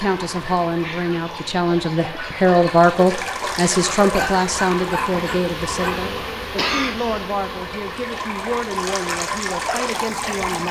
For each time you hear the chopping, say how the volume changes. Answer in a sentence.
You can't hear the chopping here.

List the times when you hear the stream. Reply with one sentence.
You can hear the stream from 0.0 to 10.6 s.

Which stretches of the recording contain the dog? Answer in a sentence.
The dog can be heard from 4.1 to 6.1 s.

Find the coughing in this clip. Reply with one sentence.
The coughing can be heard from 6.5 to 7.3 s.